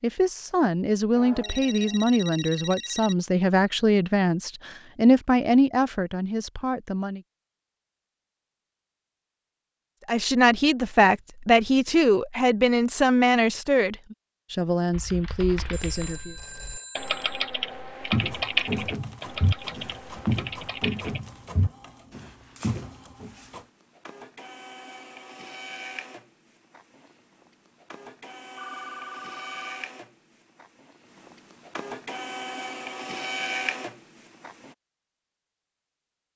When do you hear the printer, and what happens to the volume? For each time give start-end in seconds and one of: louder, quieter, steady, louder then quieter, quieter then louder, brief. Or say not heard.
18.2-34.8 louder.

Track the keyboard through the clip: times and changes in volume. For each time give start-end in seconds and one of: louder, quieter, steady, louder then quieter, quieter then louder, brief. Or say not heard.
14.9-21.2 louder then quieter.